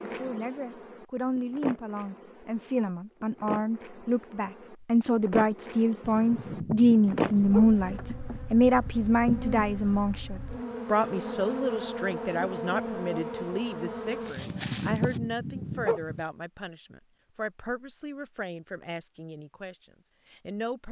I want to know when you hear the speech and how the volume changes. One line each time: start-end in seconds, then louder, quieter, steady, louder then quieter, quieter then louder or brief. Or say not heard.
0.0-20.8 louder then quieter.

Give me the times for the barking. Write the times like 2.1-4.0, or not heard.
6.0-7.8, 14.3-16.2.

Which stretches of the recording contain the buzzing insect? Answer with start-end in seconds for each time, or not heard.
0.0-15.2.